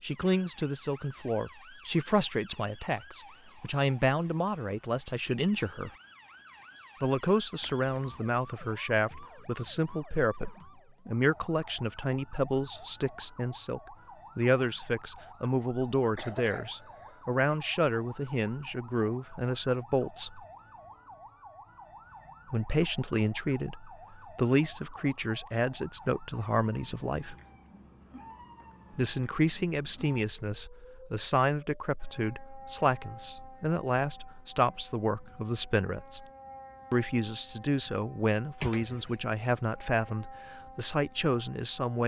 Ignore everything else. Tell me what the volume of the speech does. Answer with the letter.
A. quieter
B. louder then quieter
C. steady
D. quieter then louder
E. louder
C.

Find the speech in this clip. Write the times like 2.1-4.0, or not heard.
0.0-5.9, 7.0-20.4, 22.5-27.4, 28.9-36.2, 36.9-42.0.